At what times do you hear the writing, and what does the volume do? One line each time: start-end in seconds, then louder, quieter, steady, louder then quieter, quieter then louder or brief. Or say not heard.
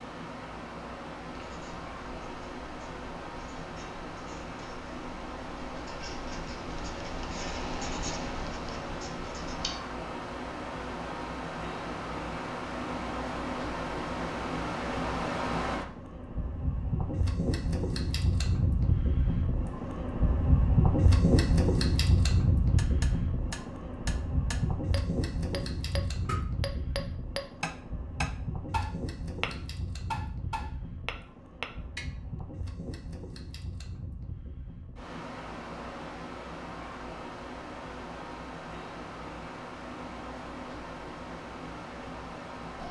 1.2-9.7 louder.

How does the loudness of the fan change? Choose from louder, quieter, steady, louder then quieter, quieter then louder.
louder then quieter.